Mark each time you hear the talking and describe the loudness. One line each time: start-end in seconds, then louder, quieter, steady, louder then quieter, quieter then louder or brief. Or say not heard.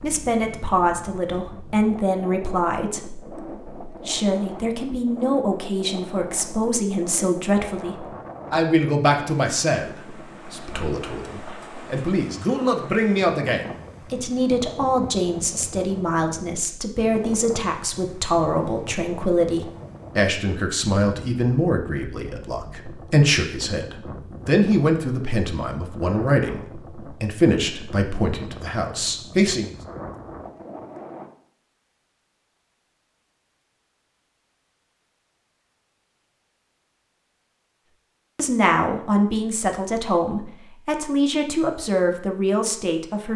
0.0-29.8 steady
38.4-43.3 steady.